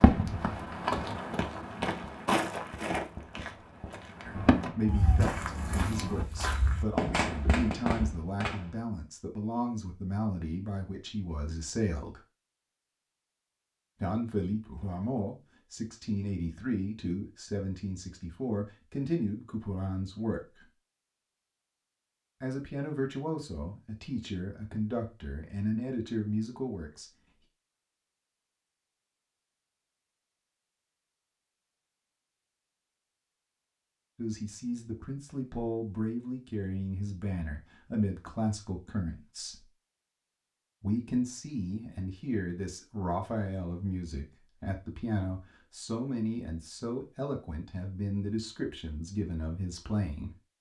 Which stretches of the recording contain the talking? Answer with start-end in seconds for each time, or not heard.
4.2-12.2, 14.0-20.6, 22.4-27.1, 34.1-39.6, 40.8-50.3.